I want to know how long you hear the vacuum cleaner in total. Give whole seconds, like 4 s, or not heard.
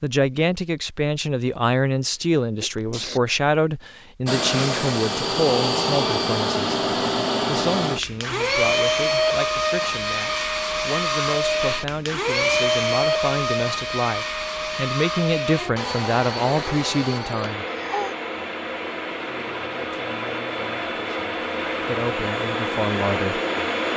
20 s.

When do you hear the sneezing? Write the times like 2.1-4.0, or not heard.
2.1-3.2, 17.3-18.1.